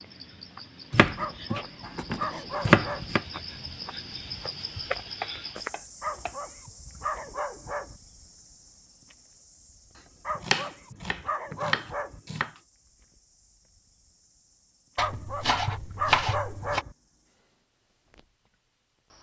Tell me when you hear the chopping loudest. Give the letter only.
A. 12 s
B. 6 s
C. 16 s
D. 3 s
D.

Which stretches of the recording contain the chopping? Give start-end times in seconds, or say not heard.
0.9-3.2, 5.2-6.3, 10.3-12.5, 14.9-16.9.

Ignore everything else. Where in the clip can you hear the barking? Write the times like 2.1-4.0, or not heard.
1.1-3.1, 6.0-8.0, 10.2-12.2, 14.9-16.9.